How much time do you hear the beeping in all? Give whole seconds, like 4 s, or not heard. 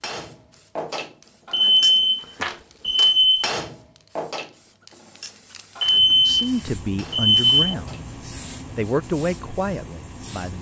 4 s.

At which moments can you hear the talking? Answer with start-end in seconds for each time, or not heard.
6.2-8.0, 8.8-10.5.